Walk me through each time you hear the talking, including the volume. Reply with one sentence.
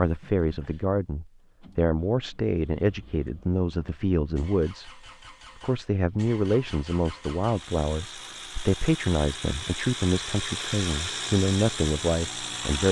You can hear the talking from 0.0 to 12.8 s, at a steady volume.